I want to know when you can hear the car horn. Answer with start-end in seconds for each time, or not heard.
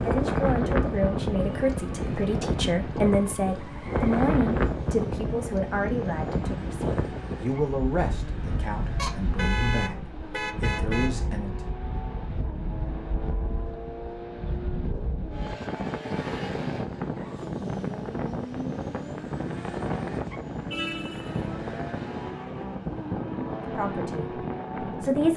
8.9-11.1, 20.7-21.4.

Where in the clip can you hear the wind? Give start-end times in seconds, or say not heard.
0.0-25.3.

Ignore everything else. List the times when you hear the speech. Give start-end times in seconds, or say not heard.
0.0-11.7, 23.8-25.3.